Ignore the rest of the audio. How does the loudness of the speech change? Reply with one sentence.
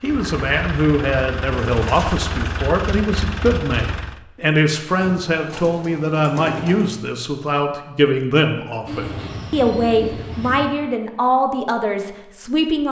The loudness of the speech stays about the same.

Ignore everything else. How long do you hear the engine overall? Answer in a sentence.
The engine can be heard for 4 seconds in total.